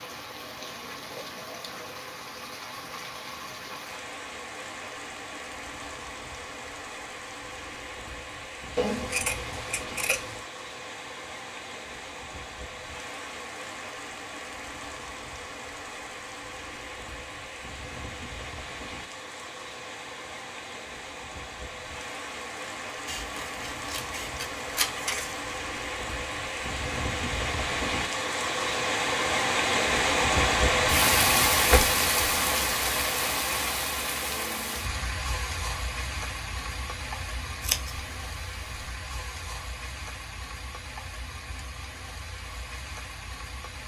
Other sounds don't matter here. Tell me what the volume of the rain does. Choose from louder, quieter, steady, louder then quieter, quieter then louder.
louder then quieter.